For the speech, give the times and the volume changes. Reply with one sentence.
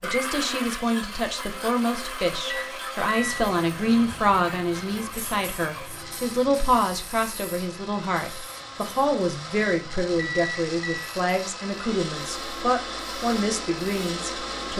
You can hear the speech from 0.0 to 14.7 s, at a steady volume.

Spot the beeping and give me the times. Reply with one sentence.
The beeping can be heard from 2.5 to 3.5 s and from 9.6 to 11.1 s.